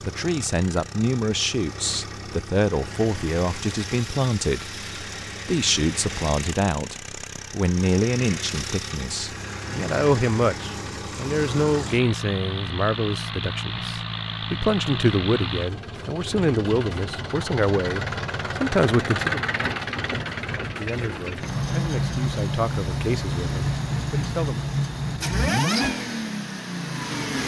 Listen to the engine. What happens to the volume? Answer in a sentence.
The volume of the engine goes up.